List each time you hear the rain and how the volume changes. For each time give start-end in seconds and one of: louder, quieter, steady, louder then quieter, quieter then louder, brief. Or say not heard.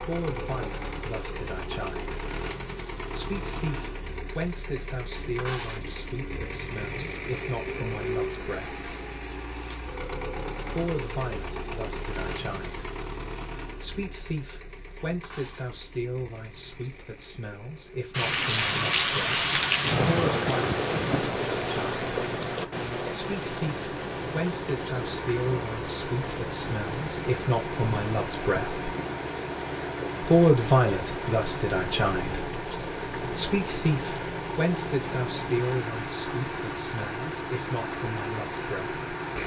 18.1-39.4 quieter.